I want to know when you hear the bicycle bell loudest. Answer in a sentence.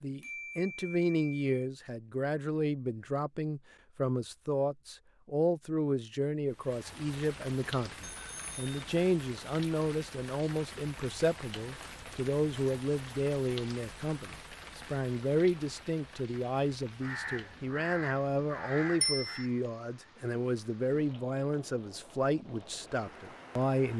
The volume of the bicycle bell peaks at 19 seconds.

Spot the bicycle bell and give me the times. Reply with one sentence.
You can hear the bicycle bell from 0.2 to 1.5 s, from 8.0 to 8.8 s and from 19.0 to 19.4 s.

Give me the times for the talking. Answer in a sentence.
The talking can be heard from 0.0 to 23.9 s.